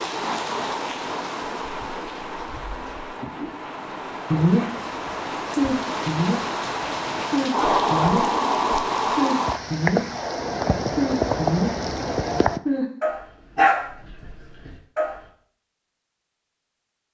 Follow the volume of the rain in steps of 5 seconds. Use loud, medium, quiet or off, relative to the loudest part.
medium, loud, loud, off.